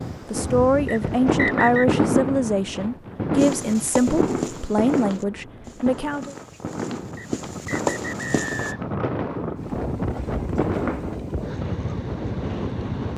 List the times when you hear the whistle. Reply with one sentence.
You can hear the whistle from 0.8 to 1.9 s and from 7.2 to 8.8 s.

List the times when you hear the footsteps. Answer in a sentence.
You can hear the footsteps from 3.4 to 8.8 s.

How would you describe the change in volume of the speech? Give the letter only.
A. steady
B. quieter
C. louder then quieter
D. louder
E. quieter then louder
A.